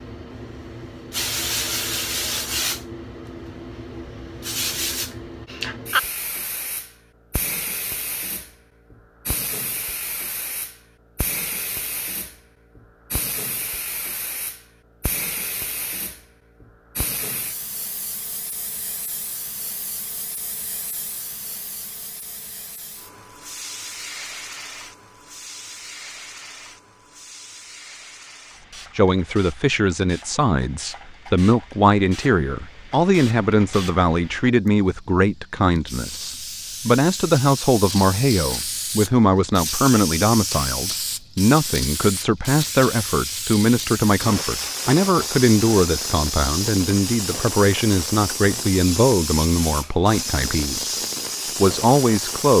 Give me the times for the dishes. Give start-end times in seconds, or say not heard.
not heard.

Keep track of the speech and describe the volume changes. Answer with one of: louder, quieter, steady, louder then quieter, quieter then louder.
steady.